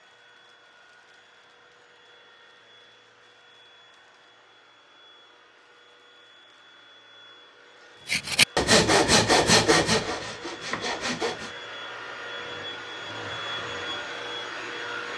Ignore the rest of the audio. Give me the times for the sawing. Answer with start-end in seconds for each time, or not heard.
8.1-11.5.